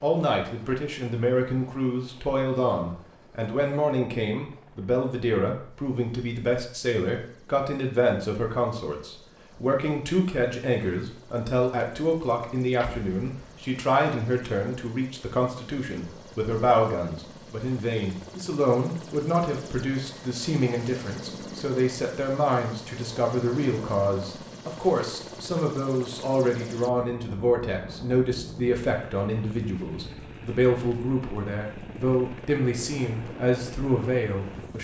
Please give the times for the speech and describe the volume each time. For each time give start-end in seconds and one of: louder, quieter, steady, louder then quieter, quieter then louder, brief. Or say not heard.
0.0-34.7 steady.